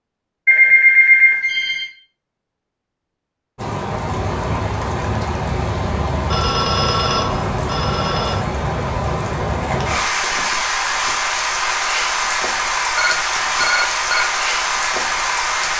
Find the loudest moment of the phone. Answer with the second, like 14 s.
1 s.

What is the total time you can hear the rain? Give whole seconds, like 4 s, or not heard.
12 s.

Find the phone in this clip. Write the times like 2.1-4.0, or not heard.
0.5-1.9, 6.2-8.4, 12.9-14.2.